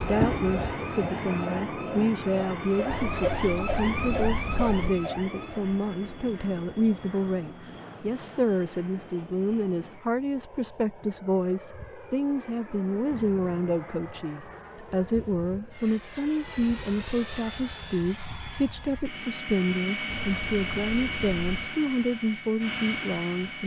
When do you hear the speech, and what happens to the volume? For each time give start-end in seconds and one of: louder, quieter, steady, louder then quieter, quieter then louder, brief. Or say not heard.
0.0-23.6 steady.